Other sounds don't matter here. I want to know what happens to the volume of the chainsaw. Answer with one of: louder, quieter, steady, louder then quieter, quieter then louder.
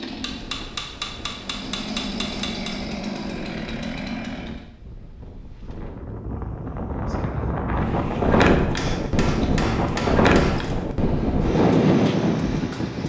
louder.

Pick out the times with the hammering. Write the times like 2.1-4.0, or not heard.
0.2-2.8, 8.8-10.8.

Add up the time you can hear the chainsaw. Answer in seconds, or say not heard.
5 s.